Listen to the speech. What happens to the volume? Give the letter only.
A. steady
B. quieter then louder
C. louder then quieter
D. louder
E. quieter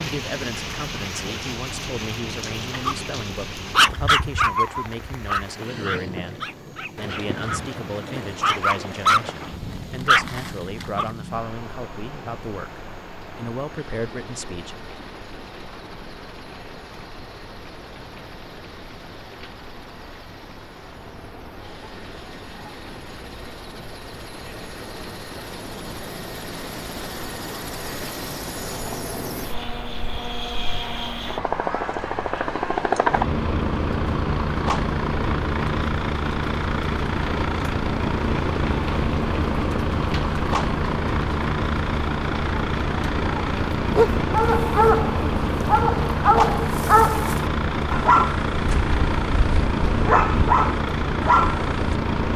A.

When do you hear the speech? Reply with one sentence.
You can hear the speech from 0.0 to 14.8 s.